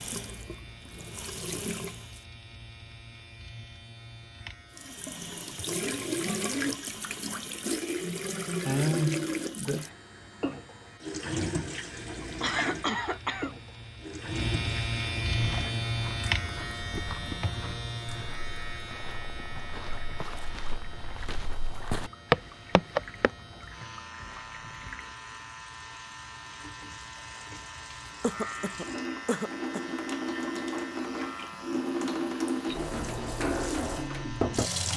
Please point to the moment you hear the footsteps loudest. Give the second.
22 s.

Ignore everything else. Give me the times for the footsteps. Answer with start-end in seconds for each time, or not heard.
15.3-23.3.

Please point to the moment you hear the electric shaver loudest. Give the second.
16 s.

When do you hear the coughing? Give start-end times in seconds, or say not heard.
12.4-13.5, 28.2-29.9.